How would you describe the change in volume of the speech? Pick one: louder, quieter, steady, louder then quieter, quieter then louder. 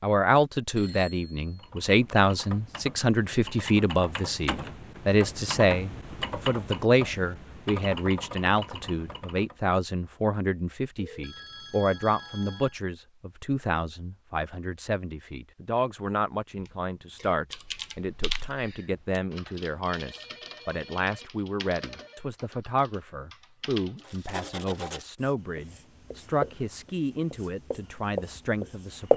quieter.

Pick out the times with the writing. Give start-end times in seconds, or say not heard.
24.0-29.1.